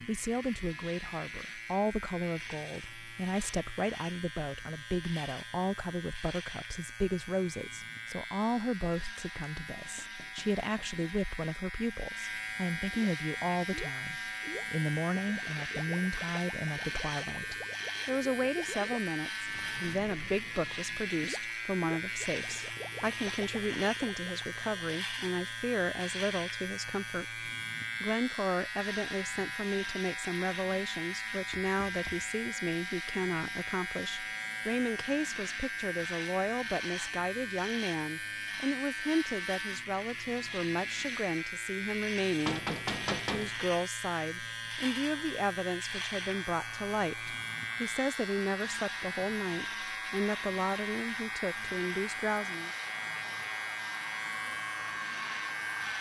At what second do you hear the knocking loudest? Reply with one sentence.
The volume of the knocking peaks at 43 seconds.